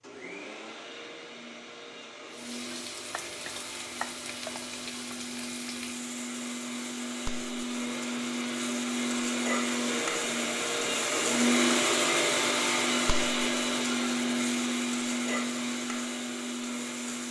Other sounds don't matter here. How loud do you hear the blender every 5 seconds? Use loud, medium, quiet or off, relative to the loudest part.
quiet, medium, loud, medium.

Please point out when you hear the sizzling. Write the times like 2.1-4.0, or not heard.
2.3-17.2.